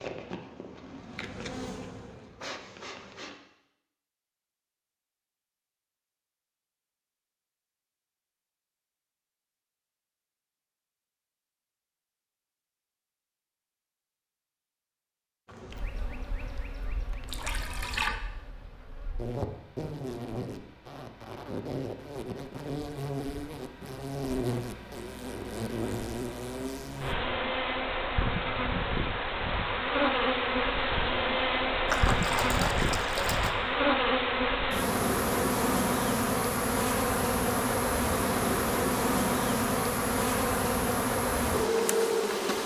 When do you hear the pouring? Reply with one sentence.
You can hear the pouring from 17.2 to 18.1 s and from 31.9 to 33.5 s.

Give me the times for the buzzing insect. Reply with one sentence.
You can hear the buzzing insect from 0.0 to 3.4 s and from 15.4 to 42.6 s.